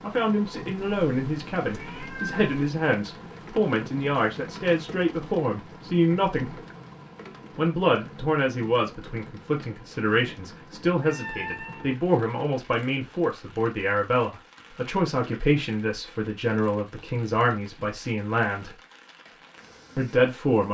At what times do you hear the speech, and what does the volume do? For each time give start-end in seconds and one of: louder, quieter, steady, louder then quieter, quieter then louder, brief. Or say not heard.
0.0-6.5 steady
7.5-18.8 steady
19.9-20.6 brief.